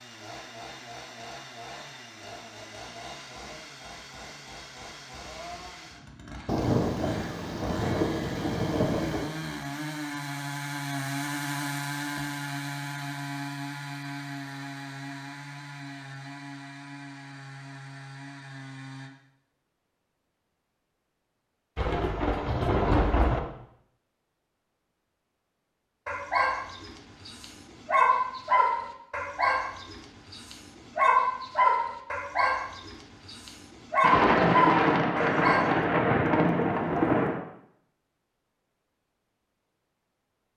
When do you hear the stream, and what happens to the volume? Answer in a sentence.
You can't hear the stream here.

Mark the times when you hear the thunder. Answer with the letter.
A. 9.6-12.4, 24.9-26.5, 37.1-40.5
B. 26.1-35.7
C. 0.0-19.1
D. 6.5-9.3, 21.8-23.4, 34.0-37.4
D.